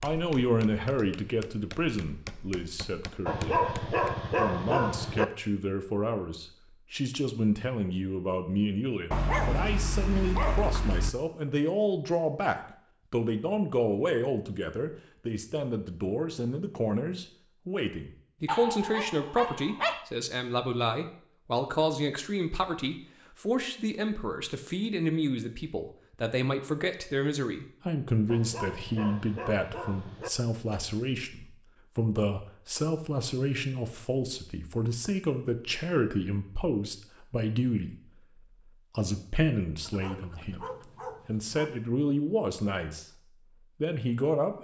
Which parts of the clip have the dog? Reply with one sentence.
You can hear the dog from 3.2 to 5.2 s, from 9.1 to 11.1 s, from 18.4 to 20.1 s, from 28.2 to 30.3 s and from 39.9 to 41.7 s.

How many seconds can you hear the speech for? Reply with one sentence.
The speech can be heard for 43 seconds in total.